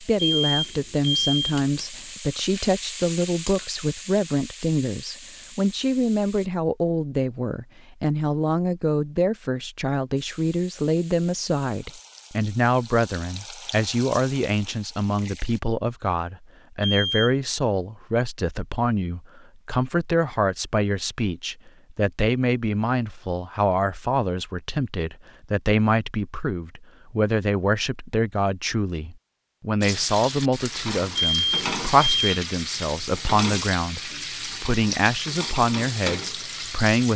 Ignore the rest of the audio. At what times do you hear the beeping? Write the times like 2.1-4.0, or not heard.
0.1-1.6, 16.8-17.4, 31.1-32.4.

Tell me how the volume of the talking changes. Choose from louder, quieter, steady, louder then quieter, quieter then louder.
steady.